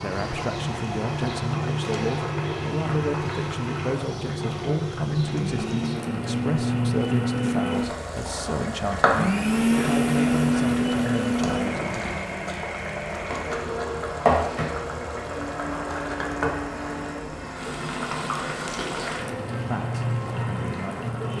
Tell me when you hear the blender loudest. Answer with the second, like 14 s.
10 s.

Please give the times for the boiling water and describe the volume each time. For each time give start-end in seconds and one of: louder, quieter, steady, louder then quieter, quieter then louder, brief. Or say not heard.
0.0-21.3 steady.